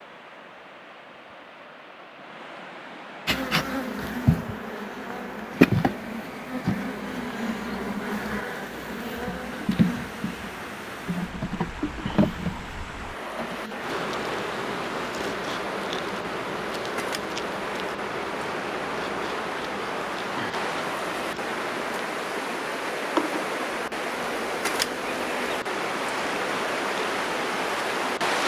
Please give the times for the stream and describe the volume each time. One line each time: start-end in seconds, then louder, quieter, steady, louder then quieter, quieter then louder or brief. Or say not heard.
0.0-28.4 louder.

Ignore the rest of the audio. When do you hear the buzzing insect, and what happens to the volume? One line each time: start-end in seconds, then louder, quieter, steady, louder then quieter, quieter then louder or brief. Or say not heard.
3.2-28.4 quieter.